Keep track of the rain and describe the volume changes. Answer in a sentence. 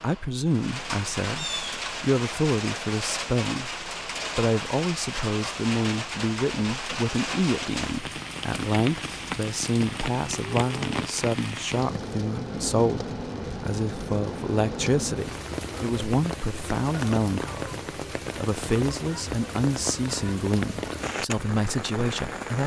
The loudness of the rain stays about the same.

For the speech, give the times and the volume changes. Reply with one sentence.
You can hear the speech from 0.0 to 22.6 s, at a steady volume.